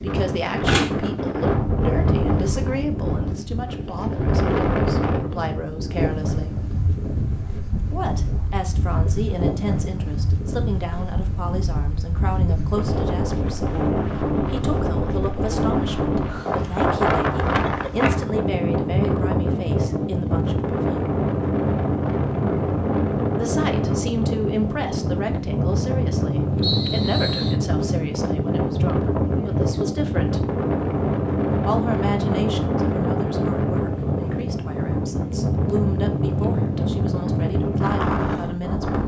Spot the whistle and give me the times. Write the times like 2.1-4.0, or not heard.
26.6-27.6.